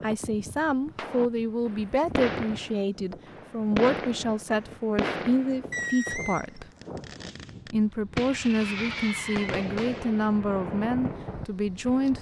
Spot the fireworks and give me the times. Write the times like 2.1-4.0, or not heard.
0.9-12.1.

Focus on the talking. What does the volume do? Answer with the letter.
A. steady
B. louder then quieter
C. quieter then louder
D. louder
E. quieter
A.